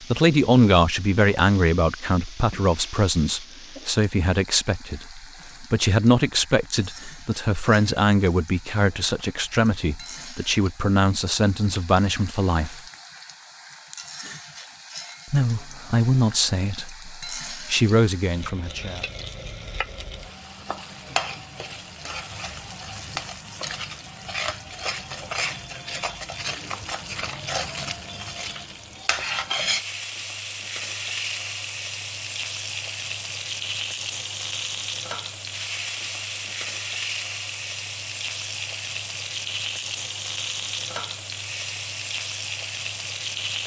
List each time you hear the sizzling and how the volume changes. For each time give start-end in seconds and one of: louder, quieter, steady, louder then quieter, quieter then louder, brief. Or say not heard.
0.0-43.6 louder.